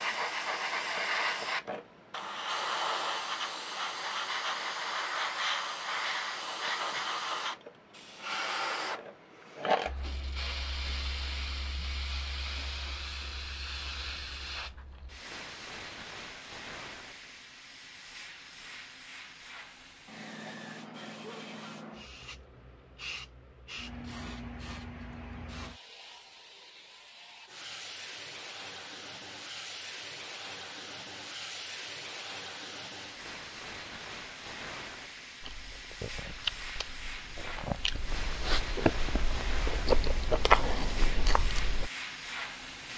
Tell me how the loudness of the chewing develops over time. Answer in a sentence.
The volume of the chewing goes up.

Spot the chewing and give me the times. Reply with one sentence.
The chewing can be heard from 35.4 to 41.9 s.